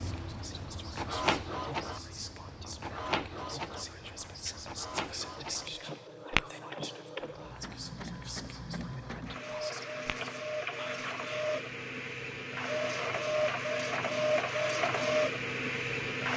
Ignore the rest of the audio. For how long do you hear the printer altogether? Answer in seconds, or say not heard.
16 s.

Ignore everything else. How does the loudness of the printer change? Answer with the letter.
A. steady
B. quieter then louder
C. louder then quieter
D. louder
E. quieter
B.